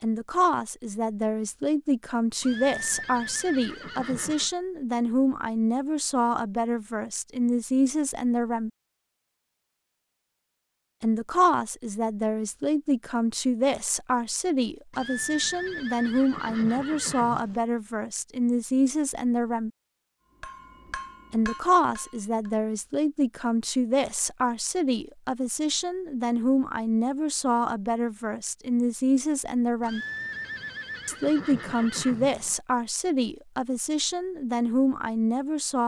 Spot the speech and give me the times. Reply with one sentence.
The speech can be heard from 0.0 to 8.7 s, from 11.0 to 19.7 s, from 21.3 to 30.1 s and from 31.1 to 35.8 s.